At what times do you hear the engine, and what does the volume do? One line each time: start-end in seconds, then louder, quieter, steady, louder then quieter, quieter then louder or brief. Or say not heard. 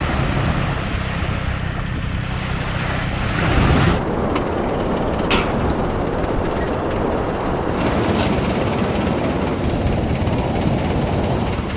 0.1-11.7 steady.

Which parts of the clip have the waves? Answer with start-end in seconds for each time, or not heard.
0.0-11.7.